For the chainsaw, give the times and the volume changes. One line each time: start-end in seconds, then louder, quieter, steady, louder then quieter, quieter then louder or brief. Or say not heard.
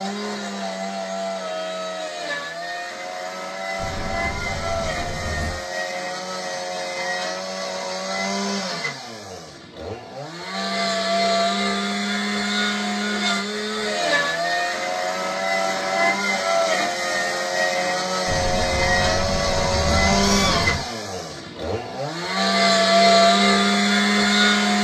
0.0-24.7 louder.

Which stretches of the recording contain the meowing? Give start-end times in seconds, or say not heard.
3.8-5.6, 18.2-20.9.